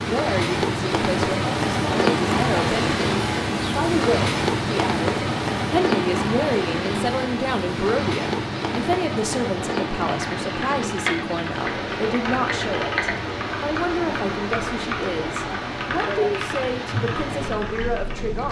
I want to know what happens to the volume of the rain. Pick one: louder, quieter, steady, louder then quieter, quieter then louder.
quieter.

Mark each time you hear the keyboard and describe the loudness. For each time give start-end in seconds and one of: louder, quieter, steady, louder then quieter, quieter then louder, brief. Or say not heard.
10.1-18.1 steady.